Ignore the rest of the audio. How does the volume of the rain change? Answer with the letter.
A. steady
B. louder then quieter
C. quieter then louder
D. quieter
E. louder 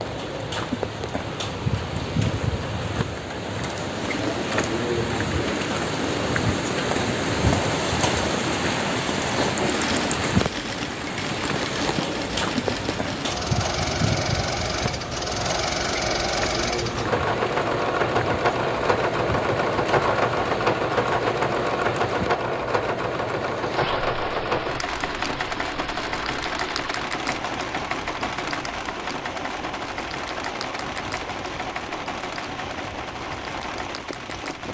D.